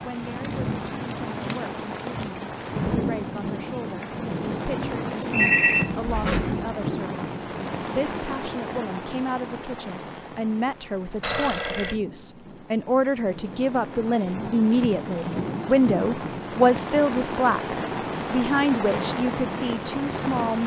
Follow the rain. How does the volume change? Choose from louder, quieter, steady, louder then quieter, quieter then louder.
quieter then louder.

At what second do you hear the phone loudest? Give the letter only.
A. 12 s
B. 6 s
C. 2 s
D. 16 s
B.